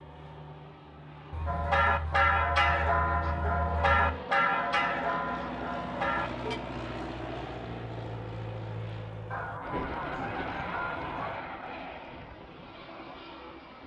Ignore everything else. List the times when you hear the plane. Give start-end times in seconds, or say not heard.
0.0-13.8.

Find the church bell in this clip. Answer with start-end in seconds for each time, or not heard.
1.4-6.6.